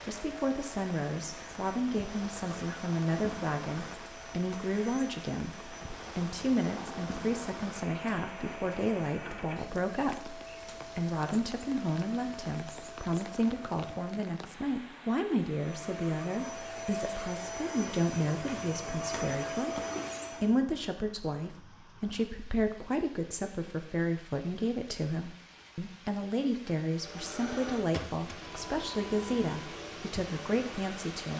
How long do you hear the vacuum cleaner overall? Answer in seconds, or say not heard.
24 s.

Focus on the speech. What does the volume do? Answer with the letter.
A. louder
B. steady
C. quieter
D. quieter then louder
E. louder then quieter
B.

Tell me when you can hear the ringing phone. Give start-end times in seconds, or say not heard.
not heard.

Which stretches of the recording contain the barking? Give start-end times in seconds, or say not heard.
not heard.